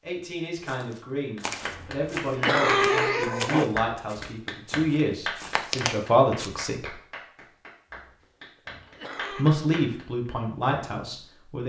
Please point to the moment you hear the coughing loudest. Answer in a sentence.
The loudest moment of the coughing is at 3 seconds.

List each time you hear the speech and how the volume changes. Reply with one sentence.
You can hear the speech from 0.1 to 7.0 s, getting louder; and briefly from 9.3 to 11.6 s.